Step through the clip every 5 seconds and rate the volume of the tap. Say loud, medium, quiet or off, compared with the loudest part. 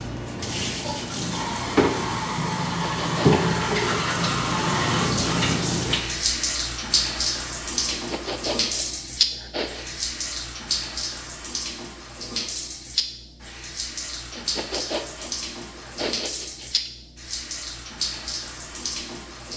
loud, loud, medium, medium.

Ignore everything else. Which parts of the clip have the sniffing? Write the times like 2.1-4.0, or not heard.
2.8-3.5, 7.9-9.8, 14.3-16.9.